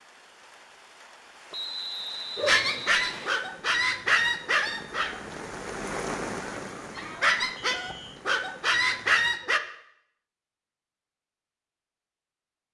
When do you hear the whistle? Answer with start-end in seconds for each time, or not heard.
1.5-3.4, 7.7-8.2.